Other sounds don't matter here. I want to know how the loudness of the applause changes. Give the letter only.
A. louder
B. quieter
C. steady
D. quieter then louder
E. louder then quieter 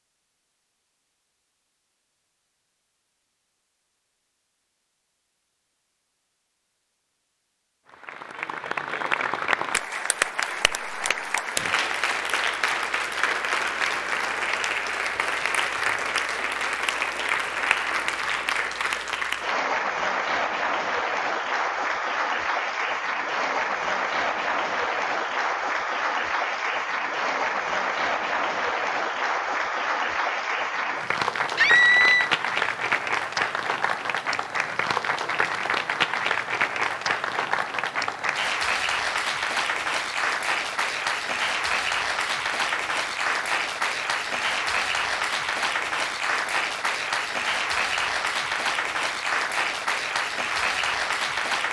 C.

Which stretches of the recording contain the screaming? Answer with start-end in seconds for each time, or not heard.
31.6-32.3.